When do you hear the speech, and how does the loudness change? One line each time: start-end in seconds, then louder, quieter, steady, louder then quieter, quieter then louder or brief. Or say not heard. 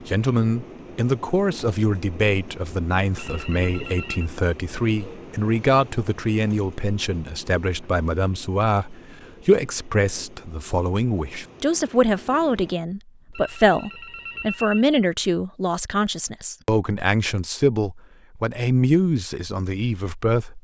0.1-20.5 steady.